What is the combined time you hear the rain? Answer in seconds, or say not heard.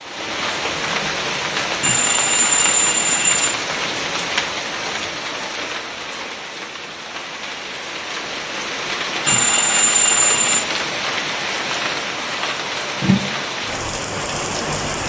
15 s.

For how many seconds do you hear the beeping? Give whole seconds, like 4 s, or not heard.
3 s.